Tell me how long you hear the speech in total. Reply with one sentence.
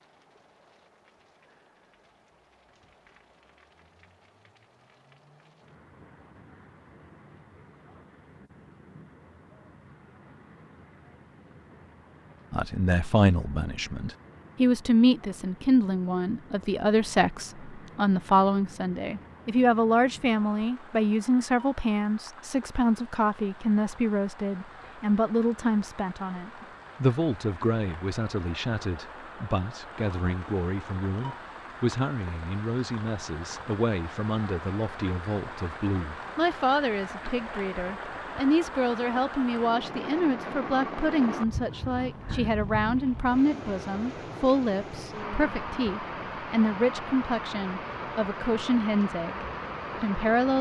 You can hear the speech for 38 seconds altogether.